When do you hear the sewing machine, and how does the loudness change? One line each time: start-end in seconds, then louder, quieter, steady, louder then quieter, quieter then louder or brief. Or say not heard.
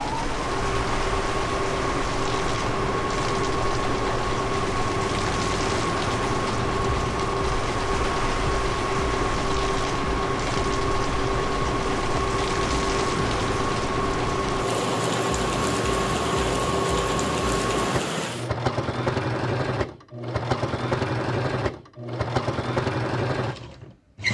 0.0-24.2 steady.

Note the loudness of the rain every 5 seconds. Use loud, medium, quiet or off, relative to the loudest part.
loud, loud, loud, loud, off.